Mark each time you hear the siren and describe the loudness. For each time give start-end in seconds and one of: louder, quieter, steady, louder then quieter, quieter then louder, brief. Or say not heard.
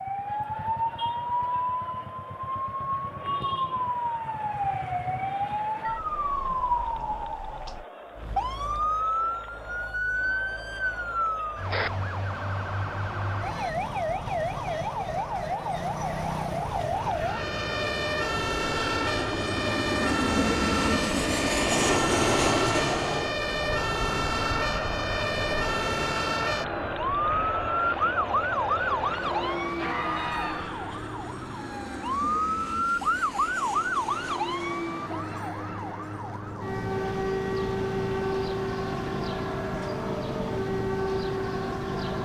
0.0-42.2 steady.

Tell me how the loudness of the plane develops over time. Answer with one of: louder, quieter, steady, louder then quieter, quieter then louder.
quieter.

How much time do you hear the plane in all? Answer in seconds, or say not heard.
25 s.